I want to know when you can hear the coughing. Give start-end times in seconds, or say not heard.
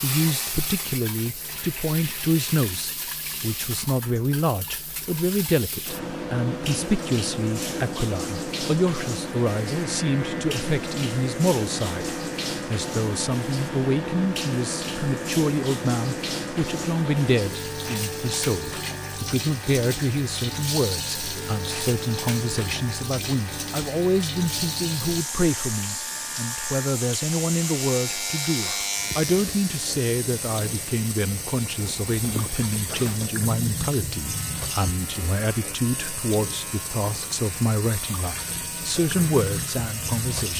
not heard.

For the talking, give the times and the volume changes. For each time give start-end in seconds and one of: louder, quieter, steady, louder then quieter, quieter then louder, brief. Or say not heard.
0.0-40.5 steady.